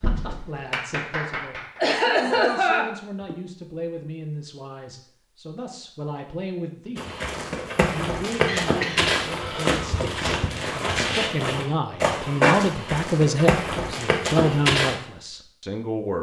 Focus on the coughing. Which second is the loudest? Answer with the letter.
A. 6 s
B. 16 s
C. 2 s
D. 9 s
C.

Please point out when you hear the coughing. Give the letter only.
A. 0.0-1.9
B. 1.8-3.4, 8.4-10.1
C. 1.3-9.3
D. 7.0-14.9
B.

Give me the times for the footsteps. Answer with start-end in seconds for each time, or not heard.
7.0-14.9.